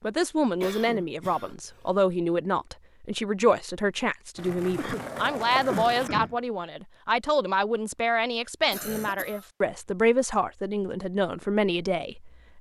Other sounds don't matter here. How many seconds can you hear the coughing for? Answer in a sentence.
You can hear the coughing for 4 seconds altogether.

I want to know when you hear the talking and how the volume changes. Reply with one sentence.
The talking can be heard from 0.0 to 12.5 s, at a steady volume.